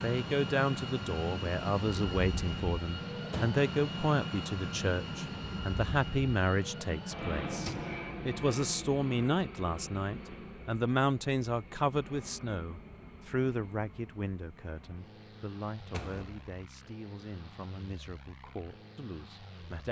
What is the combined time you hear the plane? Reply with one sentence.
You can hear the plane for 20 seconds altogether.